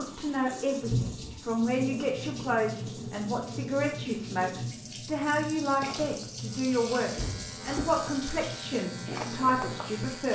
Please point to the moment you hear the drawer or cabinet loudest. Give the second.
1 s.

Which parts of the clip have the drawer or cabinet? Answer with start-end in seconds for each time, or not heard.
0.9-1.4, 7.2-7.9.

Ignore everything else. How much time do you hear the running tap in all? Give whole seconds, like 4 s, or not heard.
10 s.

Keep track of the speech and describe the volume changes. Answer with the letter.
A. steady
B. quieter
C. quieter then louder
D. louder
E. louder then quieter
A.